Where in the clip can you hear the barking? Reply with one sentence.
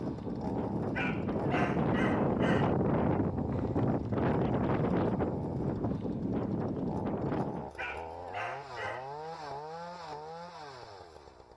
The barking can be heard from 0.9 to 2.8 s and from 7.8 to 9.3 s.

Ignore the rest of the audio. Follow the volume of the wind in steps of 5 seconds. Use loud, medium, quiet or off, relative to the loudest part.
loud, loud, off.